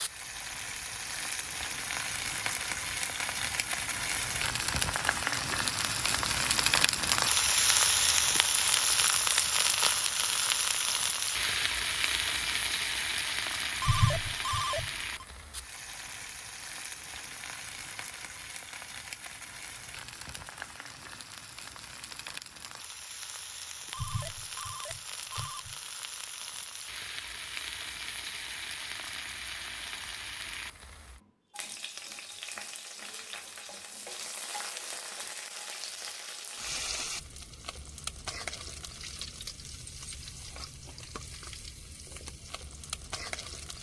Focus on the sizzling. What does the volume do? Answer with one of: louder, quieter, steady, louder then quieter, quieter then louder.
quieter.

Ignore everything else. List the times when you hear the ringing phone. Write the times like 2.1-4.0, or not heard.
13.8-15.2, 23.9-25.8.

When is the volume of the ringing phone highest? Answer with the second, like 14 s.
14 s.